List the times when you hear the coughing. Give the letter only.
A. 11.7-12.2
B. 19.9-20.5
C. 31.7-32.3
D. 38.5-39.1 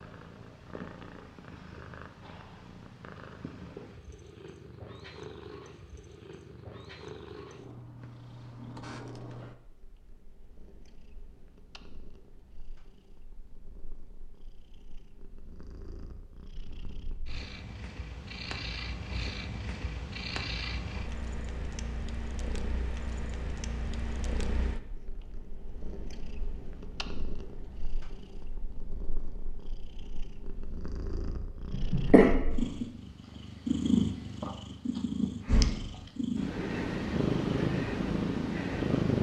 C.